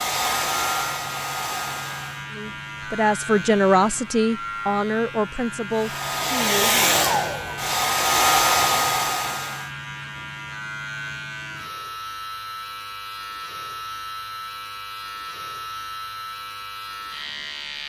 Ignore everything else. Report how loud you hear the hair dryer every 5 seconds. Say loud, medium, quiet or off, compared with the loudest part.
medium, loud, off, off.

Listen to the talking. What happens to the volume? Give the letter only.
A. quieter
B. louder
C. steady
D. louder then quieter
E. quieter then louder
A.